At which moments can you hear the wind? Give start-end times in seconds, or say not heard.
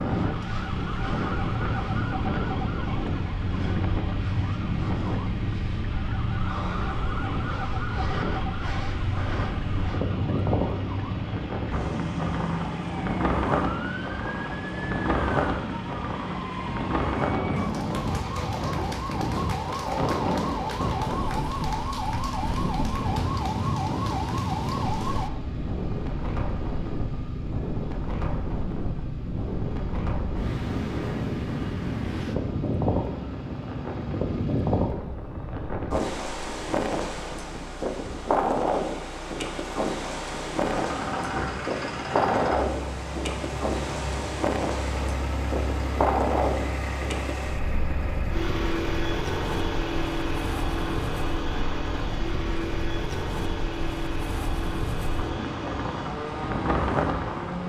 0.0-57.6.